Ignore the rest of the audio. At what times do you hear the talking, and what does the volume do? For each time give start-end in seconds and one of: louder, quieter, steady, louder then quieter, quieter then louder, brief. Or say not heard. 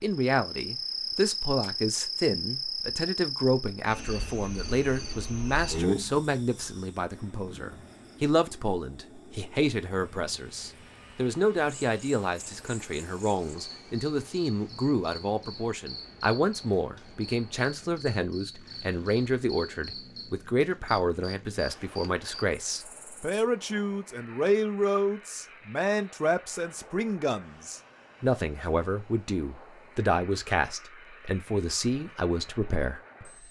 0.0-33.2 steady.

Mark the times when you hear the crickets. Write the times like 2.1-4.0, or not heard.
0.1-23.4.